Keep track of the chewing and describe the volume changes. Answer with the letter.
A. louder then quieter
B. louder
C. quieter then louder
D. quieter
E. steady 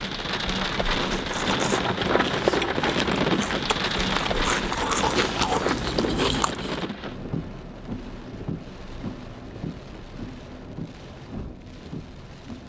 B.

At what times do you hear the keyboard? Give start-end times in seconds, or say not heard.
not heard.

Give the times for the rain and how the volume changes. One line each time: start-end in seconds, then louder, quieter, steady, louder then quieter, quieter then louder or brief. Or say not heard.
0.0-12.6 quieter.